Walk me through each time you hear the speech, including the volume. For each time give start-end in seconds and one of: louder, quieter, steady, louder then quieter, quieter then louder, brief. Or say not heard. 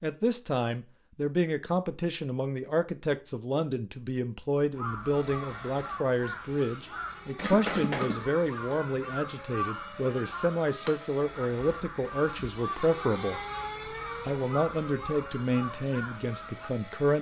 0.0-13.4 steady
14.2-17.1 brief.